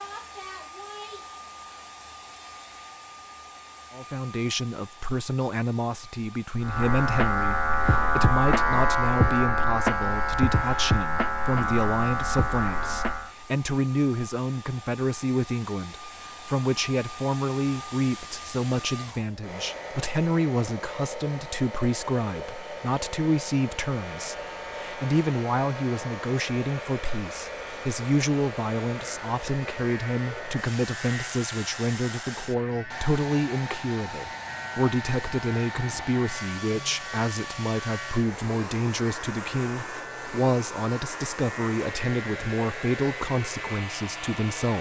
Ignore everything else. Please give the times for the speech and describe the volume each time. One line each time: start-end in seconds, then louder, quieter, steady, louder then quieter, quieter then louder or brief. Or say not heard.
3.9-44.7 steady.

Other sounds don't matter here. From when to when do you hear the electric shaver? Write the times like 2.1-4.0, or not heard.
6.6-13.3, 23.9-44.7.